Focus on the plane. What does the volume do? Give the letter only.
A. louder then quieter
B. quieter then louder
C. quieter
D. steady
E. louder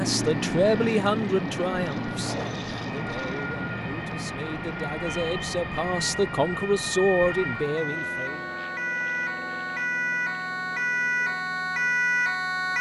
C.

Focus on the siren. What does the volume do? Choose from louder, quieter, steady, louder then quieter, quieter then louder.
louder.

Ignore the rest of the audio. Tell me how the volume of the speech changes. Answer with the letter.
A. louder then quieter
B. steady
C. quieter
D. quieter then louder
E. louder
D.